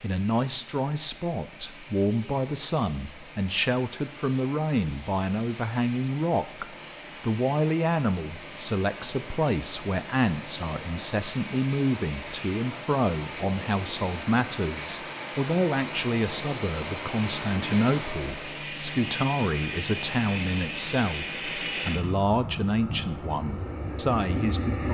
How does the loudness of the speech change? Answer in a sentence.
The volume of the speech stays about the same.